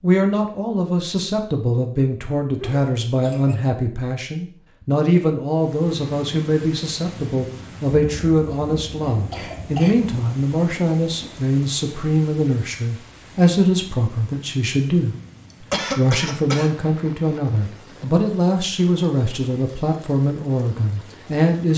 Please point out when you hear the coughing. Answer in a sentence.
The coughing can be heard from 2.6 to 3.6 s, from 8.5 to 9.9 s and from 15.5 to 16.7 s.